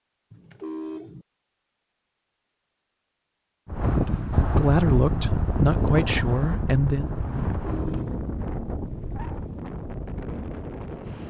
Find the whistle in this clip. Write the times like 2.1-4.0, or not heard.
not heard.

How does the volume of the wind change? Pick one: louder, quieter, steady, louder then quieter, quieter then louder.
quieter.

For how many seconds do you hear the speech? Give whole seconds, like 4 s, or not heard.
3 s.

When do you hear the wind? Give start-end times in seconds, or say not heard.
3.6-11.2.